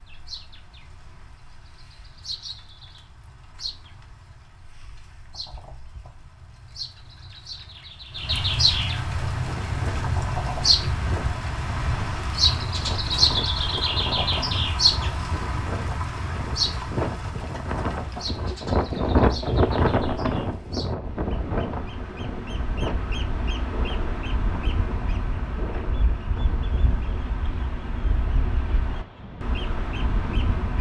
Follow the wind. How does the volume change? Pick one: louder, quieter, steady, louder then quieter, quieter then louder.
louder then quieter.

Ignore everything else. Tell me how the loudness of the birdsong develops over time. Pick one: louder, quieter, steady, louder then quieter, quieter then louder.
louder then quieter.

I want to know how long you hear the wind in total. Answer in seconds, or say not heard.
22 s.